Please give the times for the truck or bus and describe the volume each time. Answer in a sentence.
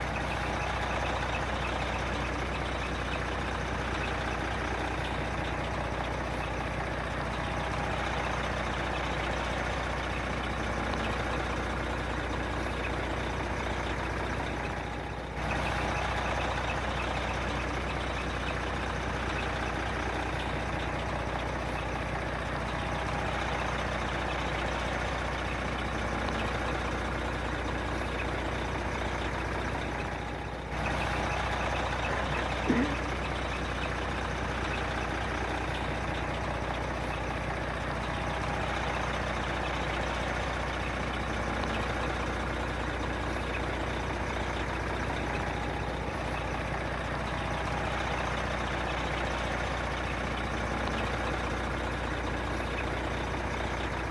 The truck or bus can be heard from 0.0 to 54.0 s, at a steady volume.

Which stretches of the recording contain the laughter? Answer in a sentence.
You can hear the laughter from 32.0 to 33.0 s.